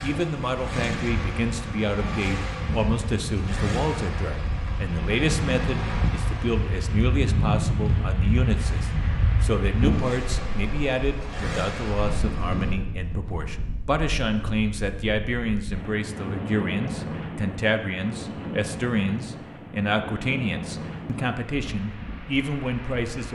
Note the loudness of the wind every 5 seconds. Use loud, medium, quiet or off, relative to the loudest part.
medium, loud, medium, medium, medium.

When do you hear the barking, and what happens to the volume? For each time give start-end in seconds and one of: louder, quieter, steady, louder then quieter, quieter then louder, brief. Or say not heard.
not heard.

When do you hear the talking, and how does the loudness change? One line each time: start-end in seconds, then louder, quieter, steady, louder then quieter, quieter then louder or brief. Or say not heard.
0.0-23.3 steady.